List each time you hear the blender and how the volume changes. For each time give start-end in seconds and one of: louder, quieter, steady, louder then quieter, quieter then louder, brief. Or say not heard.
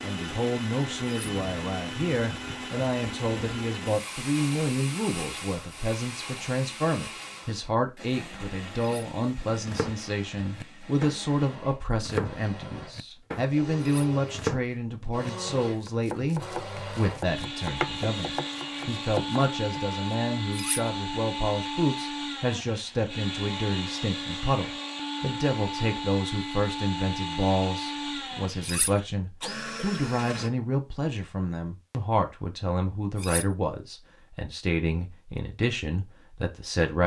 0.0-30.5 quieter then louder.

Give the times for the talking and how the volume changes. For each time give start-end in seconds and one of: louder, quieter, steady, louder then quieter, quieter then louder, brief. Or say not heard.
0.0-37.0 steady.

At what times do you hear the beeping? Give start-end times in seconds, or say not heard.
not heard.